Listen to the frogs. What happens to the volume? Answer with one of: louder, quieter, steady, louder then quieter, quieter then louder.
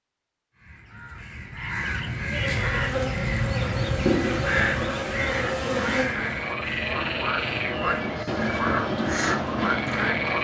louder.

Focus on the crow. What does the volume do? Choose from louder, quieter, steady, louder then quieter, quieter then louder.
quieter.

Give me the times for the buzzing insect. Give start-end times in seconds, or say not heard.
2.2-6.2.